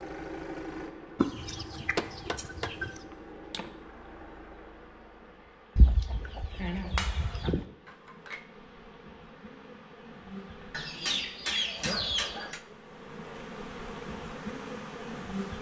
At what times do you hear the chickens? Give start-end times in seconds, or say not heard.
1.2-2.9, 5.8-7.7, 10.7-12.6.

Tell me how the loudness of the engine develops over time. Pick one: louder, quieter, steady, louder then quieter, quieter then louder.
quieter.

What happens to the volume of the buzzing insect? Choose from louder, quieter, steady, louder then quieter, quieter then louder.
louder.